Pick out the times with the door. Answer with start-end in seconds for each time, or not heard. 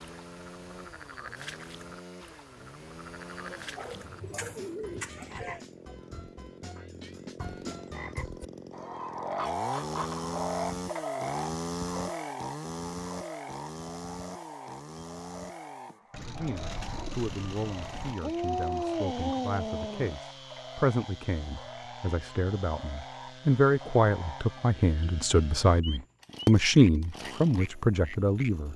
not heard.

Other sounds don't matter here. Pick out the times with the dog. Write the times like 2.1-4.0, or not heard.
3.5-4.8, 18.2-20.1.